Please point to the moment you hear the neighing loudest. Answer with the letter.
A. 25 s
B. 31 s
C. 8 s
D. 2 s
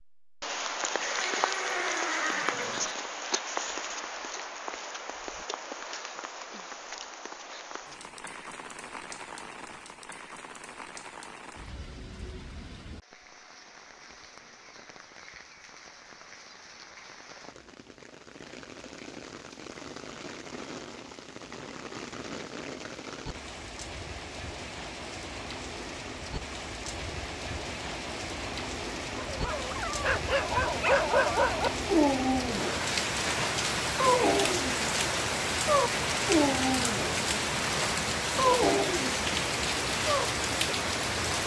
D.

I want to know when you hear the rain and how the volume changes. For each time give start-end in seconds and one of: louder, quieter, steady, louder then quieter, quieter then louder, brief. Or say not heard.
0.2-41.4 quieter then louder.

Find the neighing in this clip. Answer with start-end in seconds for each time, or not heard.
0.9-3.0.